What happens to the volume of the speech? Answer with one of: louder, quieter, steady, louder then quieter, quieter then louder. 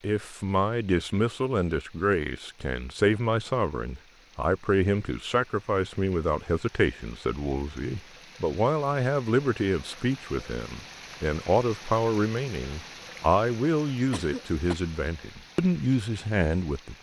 steady.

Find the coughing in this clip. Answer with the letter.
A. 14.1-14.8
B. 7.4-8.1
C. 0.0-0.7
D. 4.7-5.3
A.